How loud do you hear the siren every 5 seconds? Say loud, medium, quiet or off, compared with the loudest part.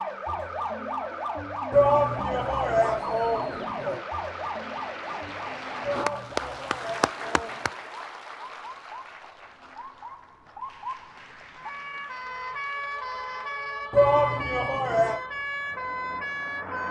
loud, medium, loud, loud.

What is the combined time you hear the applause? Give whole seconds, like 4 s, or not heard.
14 s.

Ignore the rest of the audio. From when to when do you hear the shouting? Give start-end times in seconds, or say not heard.
1.7-4.0, 5.8-7.8, 13.9-15.2.